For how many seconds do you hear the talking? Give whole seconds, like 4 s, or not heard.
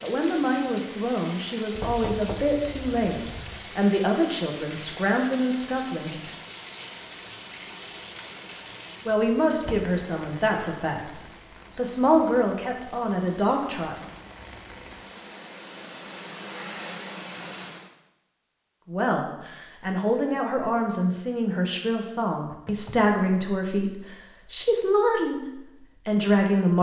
19 s.